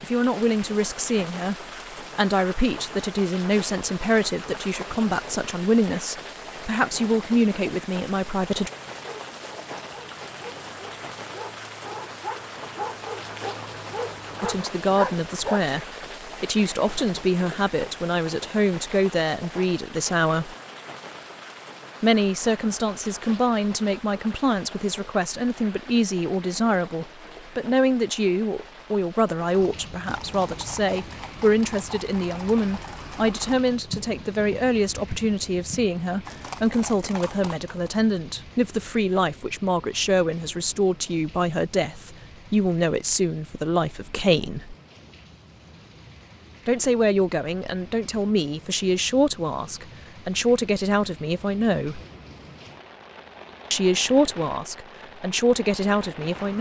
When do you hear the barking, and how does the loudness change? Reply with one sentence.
The barking can be heard from 8.8 to 15.8 s, getting louder.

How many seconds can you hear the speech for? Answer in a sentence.
You can hear the speech for 45 seconds altogether.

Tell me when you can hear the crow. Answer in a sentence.
The crow can't be heard in this clip.